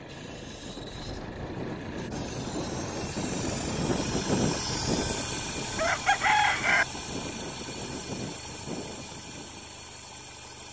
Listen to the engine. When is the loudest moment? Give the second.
5 s.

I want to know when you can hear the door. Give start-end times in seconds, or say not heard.
not heard.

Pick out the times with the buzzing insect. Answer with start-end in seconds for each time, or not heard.
not heard.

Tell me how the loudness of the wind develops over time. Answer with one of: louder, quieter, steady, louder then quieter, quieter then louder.
louder then quieter.